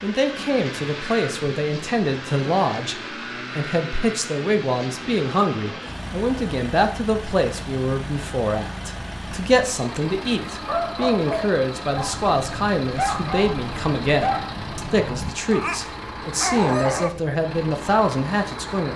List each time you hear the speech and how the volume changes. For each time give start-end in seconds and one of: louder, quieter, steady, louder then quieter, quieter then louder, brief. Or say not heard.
0.0-18.9 steady.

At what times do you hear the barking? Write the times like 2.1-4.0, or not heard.
10.6-17.1.